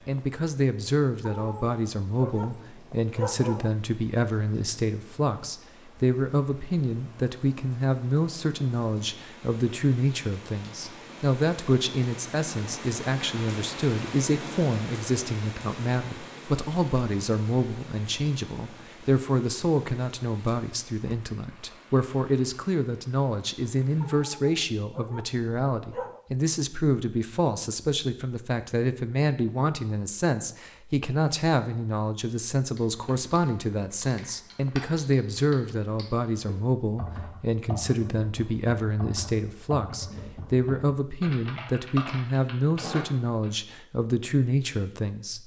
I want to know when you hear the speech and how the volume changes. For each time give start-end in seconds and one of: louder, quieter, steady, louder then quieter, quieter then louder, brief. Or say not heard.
0.1-45.4 steady.